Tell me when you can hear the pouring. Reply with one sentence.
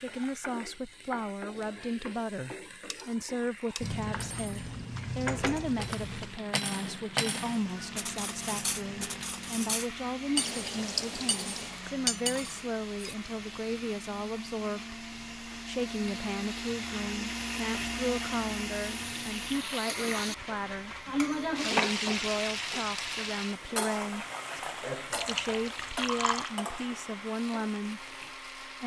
The pouring can be heard from 3.8 to 6.4 s, from 10.3 to 11.8 s and from 25.1 to 26.6 s.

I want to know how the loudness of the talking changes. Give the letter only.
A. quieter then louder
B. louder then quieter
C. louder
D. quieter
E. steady
E.